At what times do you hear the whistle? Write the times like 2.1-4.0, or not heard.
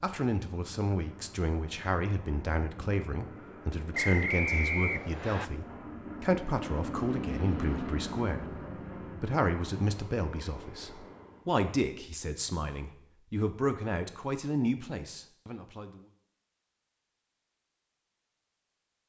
3.9-5.5.